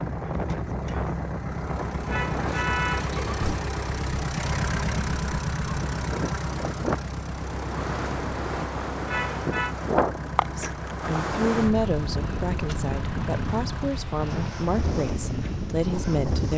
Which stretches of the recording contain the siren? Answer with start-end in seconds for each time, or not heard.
not heard.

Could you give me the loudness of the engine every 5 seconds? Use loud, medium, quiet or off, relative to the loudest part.
loud, loud, medium, medium.